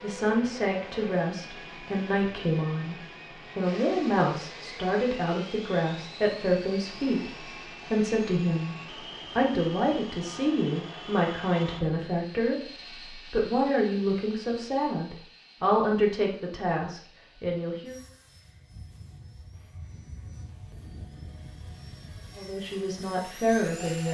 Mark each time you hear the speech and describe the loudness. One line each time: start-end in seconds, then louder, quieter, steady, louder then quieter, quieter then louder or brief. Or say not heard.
0.0-3.0 brief
3.5-17.9 steady
22.4-24.1 brief.